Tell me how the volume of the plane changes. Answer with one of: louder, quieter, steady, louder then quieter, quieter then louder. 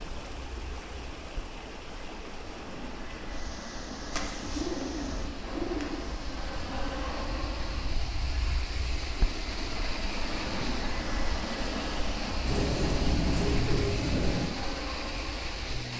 louder.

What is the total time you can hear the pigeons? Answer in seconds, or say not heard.
4 s.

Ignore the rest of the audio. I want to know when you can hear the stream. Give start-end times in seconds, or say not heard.
0.0-15.9.